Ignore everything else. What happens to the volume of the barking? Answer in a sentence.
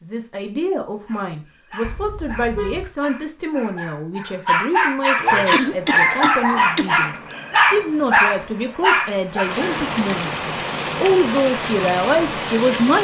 The volume of the barking goes up.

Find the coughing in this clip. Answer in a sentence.
The coughing can be heard from 5.5 to 7.3 s.